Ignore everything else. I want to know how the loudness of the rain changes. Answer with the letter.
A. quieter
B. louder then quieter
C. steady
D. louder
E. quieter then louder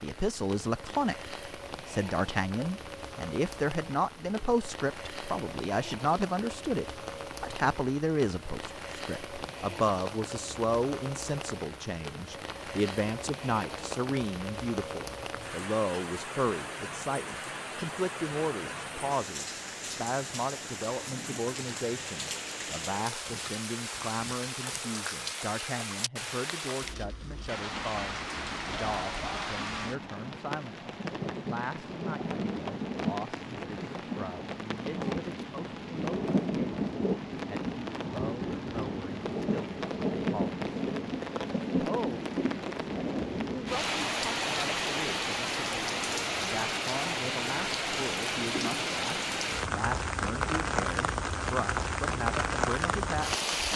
D.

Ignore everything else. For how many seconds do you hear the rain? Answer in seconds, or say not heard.
54 s.